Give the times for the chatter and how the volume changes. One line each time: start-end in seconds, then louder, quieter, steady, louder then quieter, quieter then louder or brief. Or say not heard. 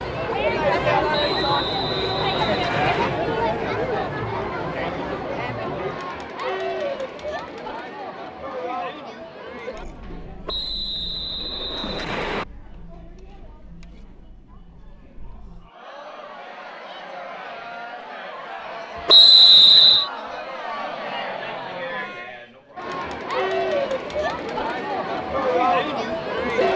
0.0-26.7 quieter then louder.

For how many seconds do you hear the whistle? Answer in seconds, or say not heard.
5 s.